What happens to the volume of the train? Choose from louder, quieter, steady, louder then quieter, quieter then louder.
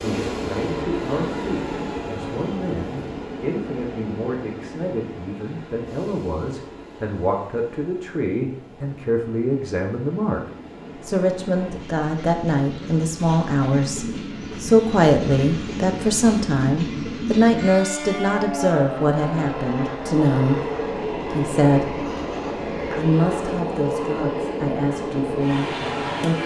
quieter then louder.